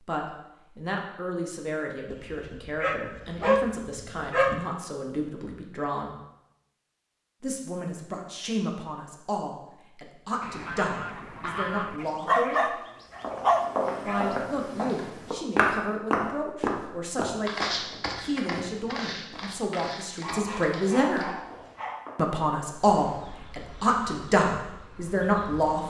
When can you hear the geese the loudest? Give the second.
12 s.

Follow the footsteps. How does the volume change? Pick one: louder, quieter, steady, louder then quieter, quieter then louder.
louder then quieter.